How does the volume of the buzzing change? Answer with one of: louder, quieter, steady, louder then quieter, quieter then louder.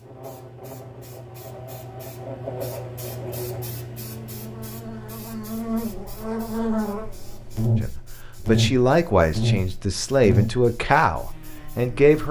louder.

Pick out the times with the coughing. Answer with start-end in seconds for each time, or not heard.
not heard.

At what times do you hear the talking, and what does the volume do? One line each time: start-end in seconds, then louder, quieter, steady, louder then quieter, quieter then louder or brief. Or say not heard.
7.8-12.2 quieter.